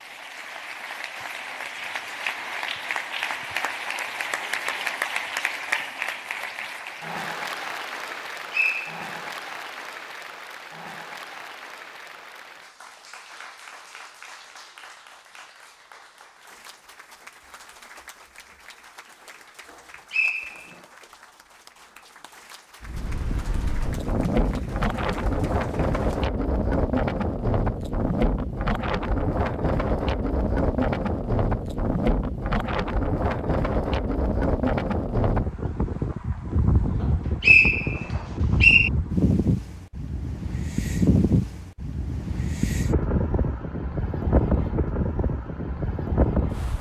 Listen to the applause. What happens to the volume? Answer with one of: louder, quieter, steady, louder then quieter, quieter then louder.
quieter.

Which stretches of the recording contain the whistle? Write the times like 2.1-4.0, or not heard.
8.1-9.3, 19.7-20.8, 37.0-38.9.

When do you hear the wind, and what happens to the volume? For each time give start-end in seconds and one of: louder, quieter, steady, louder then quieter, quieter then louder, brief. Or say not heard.
22.8-46.7 steady.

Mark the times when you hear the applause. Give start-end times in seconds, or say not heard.
0.0-26.3.